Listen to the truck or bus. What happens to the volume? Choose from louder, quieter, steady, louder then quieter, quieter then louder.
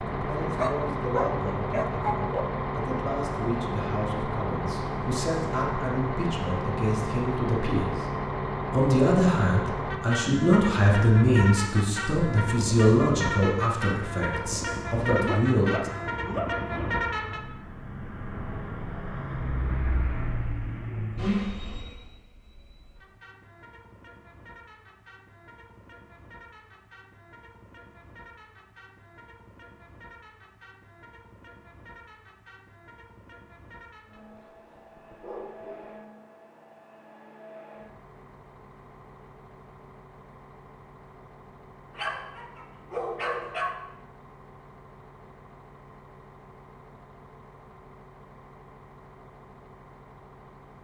quieter.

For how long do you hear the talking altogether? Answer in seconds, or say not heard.
15 s.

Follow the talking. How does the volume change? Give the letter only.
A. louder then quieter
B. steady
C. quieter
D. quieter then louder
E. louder
E.